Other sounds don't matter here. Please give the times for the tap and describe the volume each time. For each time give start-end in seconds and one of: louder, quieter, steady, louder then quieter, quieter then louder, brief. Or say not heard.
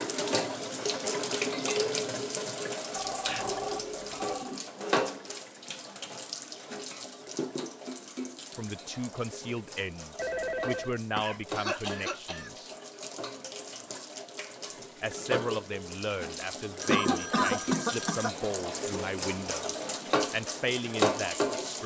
0.0-21.8 quieter then louder.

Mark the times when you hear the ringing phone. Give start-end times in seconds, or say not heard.
3.0-4.6, 10.2-10.9, 16.8-18.3.